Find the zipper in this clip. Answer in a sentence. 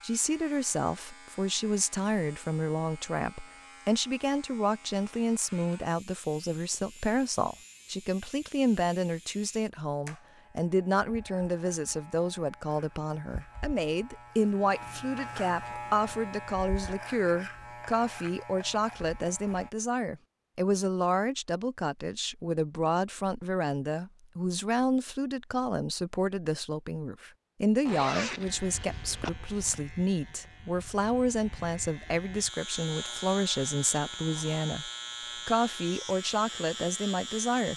You can hear the zipper from 27.9 to 29.3 s.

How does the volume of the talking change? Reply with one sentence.
The loudness of the talking stays about the same.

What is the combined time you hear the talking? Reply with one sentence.
You can hear the talking for 38 seconds altogether.